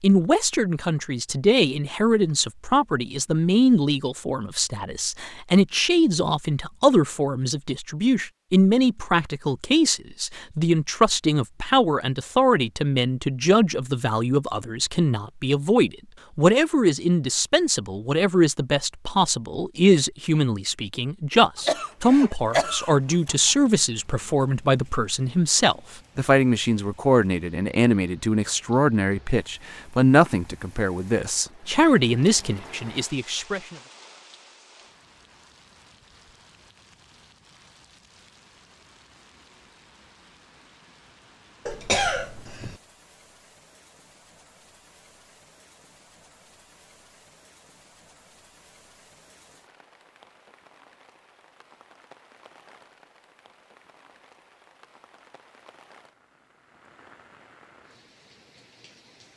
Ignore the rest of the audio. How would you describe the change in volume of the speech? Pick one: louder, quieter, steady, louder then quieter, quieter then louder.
steady.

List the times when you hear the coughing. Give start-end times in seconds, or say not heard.
21.6-23.5, 41.6-42.8.